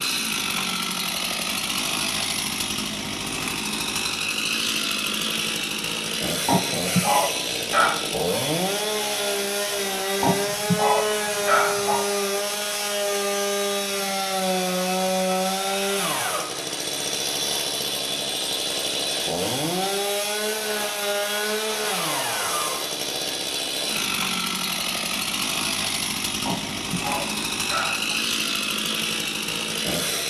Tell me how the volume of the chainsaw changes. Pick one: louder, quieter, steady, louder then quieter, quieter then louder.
steady.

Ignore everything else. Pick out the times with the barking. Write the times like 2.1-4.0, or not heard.
6.5-8.1, 10.2-12.1, 26.4-28.1.